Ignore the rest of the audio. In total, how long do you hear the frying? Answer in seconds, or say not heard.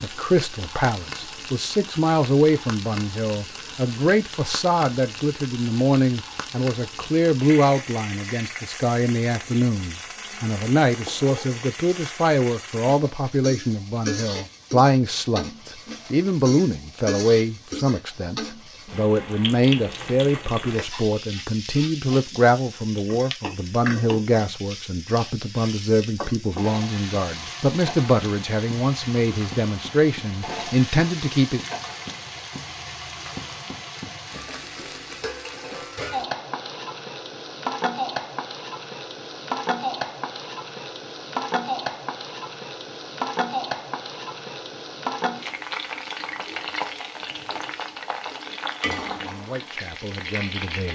51 s.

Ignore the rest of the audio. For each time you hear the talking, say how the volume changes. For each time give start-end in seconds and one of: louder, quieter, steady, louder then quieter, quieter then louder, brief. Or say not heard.
0.0-31.6 steady
49.2-50.9 brief.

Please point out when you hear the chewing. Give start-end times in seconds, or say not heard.
not heard.